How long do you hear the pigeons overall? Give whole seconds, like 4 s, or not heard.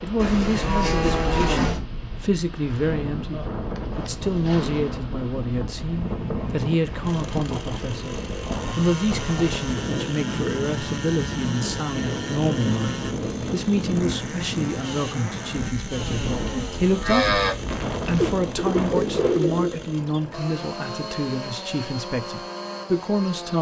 2 s.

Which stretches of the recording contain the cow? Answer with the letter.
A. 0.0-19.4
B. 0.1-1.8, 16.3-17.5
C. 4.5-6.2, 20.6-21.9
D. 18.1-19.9
B.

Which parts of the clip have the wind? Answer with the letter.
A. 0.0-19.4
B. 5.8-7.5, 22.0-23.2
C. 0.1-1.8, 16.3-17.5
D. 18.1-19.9
A.